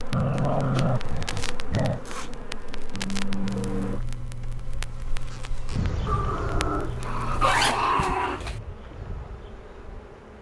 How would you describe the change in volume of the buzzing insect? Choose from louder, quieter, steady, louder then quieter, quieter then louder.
louder then quieter.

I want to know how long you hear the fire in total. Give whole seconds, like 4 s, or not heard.
8 s.